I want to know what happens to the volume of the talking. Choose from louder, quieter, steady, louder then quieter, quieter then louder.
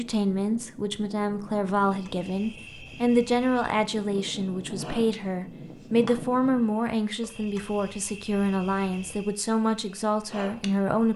steady.